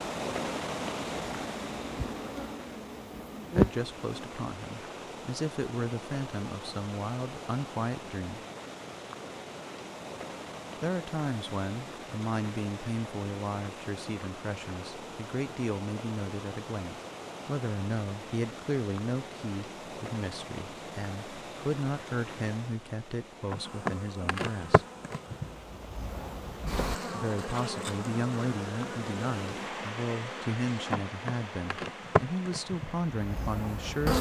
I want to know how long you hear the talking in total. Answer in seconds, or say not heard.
26 s.